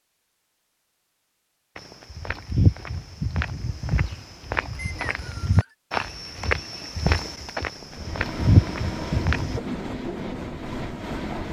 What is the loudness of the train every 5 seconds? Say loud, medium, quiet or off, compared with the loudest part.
off, loud, loud.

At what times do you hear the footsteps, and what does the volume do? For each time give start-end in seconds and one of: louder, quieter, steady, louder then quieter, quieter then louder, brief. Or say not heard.
1.8-9.6 quieter then louder.